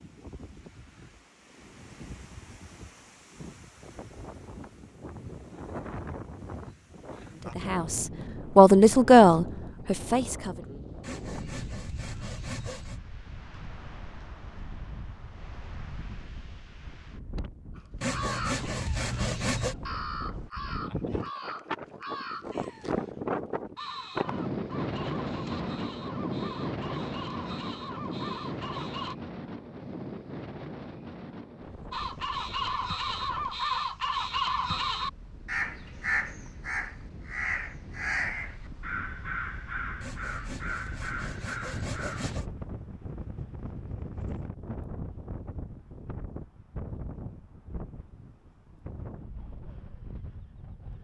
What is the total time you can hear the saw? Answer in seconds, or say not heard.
6 s.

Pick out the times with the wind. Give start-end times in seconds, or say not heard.
0.0-50.9.